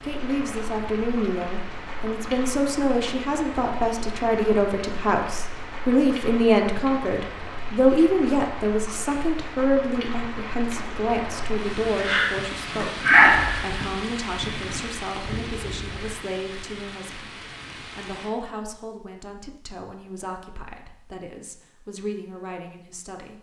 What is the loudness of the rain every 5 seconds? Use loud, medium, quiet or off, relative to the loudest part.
quiet, quiet, loud, quiet, off.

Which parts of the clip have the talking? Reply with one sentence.
The talking can be heard from 0.0 to 23.3 s.